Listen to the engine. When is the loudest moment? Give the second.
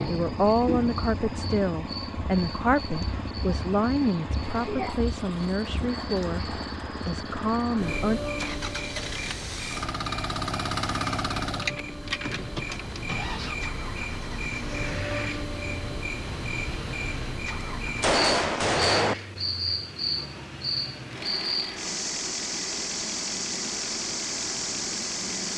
11 s.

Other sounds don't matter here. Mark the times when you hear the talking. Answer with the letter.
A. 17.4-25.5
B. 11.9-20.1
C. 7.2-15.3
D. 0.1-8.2
D.